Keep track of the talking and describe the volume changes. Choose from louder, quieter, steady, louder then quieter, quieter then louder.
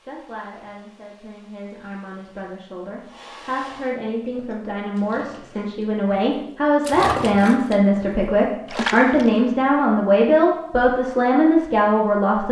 louder.